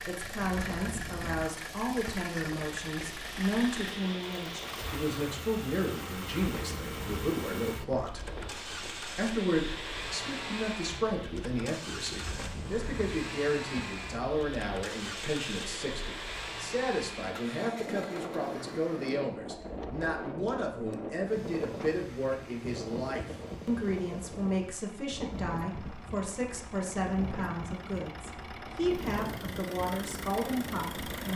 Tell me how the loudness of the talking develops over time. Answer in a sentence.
The loudness of the talking stays about the same.